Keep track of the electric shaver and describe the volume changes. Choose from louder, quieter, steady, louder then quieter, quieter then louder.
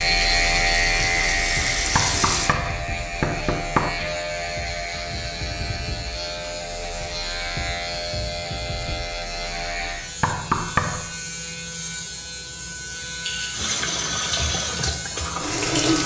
quieter.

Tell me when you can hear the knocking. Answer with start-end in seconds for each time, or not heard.
1.9-3.9, 10.2-11.1.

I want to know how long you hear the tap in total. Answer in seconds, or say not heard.
5 s.